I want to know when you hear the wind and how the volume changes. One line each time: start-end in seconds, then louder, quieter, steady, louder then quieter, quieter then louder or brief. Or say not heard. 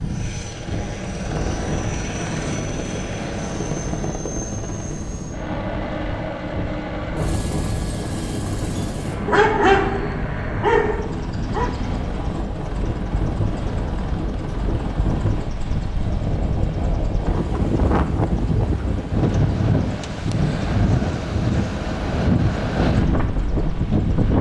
0.0-24.3 louder.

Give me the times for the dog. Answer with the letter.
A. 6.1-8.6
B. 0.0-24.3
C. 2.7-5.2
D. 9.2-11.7
D.